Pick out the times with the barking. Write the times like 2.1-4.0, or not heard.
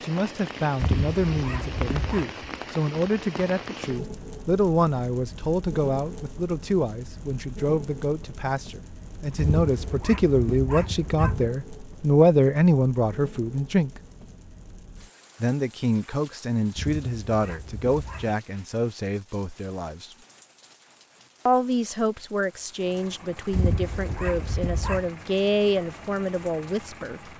0.8-2.3, 9.3-11.5, 16.8-18.4, 23.5-25.1.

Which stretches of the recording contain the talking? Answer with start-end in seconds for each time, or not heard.
0.0-13.9, 15.4-20.1, 21.4-27.3.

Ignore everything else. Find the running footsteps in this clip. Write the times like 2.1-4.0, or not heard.
not heard.